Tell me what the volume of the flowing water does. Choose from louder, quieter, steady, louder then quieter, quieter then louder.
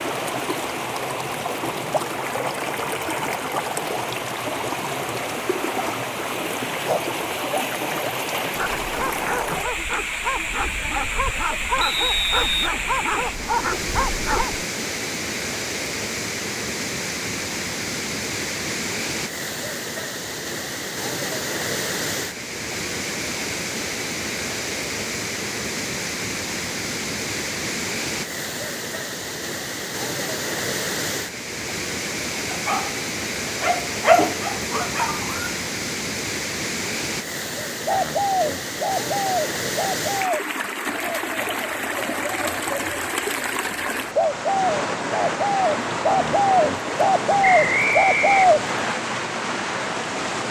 steady.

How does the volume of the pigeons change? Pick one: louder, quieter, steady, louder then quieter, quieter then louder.
quieter then louder.